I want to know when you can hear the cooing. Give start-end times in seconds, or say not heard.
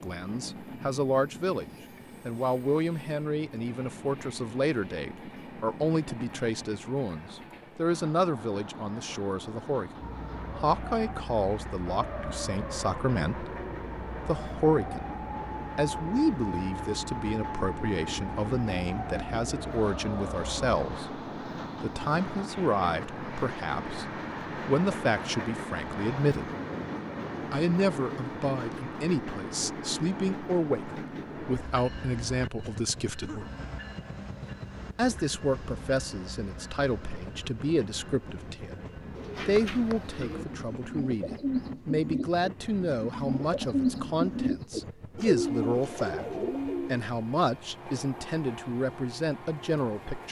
39.1-47.0.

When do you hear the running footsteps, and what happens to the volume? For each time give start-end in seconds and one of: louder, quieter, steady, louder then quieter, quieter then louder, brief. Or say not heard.
not heard.